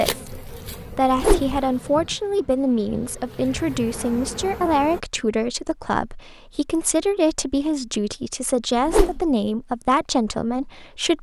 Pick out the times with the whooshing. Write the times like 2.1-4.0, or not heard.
1.1-1.6, 8.8-9.3.